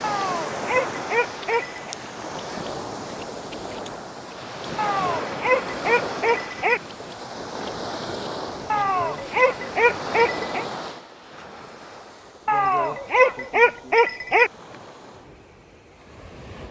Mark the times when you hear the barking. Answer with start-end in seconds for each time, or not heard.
0.0-1.9, 4.8-6.8, 8.7-10.7, 12.4-14.5.